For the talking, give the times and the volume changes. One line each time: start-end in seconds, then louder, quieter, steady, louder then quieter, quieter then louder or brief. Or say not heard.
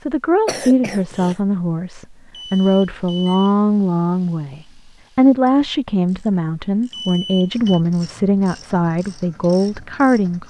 0.0-10.4 steady.